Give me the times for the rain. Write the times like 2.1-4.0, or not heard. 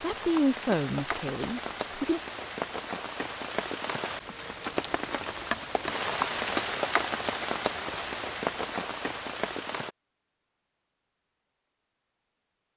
0.0-9.9.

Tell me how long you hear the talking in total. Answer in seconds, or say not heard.
2 s.